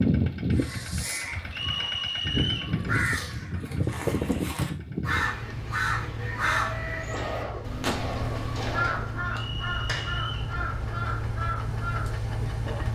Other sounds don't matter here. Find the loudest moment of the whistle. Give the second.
2 s.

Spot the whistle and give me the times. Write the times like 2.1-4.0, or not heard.
1.5-2.8, 9.3-10.6.